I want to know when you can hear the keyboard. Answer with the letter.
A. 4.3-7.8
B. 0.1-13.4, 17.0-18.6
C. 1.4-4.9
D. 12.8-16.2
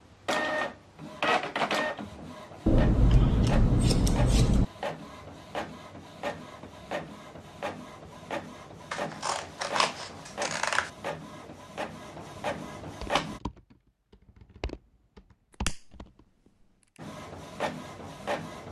D.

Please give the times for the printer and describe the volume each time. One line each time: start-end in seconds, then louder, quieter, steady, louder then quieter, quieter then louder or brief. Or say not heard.
0.1-13.4 quieter
17.0-18.6 brief.